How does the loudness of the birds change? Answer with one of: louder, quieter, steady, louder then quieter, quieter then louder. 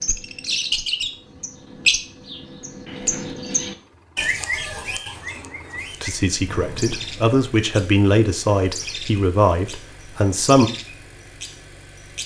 quieter.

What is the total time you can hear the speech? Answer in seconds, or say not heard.
5 s.